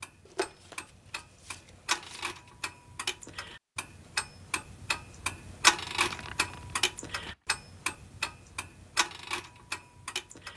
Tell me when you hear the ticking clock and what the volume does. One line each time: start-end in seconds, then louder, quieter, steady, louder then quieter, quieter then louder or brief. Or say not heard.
0.0-10.5 louder then quieter.